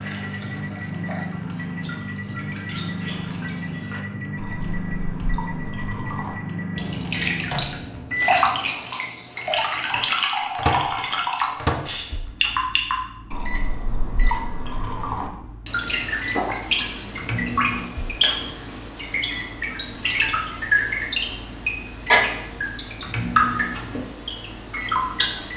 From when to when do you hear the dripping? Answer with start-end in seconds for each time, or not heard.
0.0-25.5.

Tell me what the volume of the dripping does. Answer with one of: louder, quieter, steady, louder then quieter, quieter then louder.
louder.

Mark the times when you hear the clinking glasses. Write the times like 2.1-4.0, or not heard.
not heard.